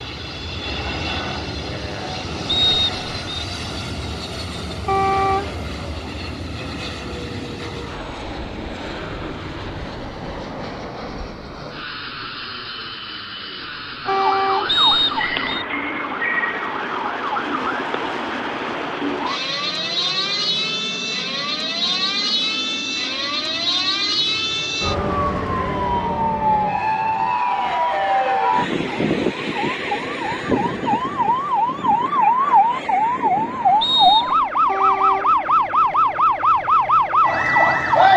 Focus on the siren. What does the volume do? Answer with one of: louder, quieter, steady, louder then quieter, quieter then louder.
louder.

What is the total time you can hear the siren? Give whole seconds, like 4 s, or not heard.
24 s.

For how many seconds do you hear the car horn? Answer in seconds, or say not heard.
2 s.